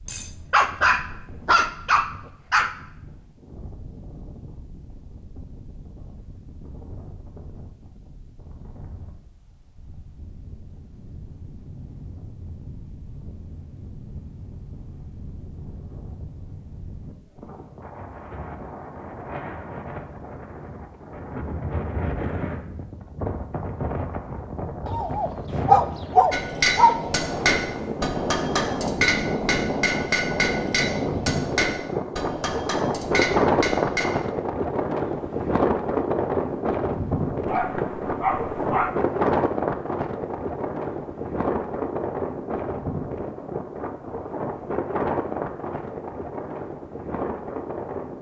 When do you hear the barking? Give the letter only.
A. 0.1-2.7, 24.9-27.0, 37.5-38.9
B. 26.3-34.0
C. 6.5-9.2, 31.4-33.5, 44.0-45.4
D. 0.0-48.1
A.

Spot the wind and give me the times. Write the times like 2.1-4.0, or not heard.
0.0-48.1.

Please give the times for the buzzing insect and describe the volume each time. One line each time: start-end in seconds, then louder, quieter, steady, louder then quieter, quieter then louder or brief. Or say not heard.
not heard.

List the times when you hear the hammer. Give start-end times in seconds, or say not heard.
26.3-34.0.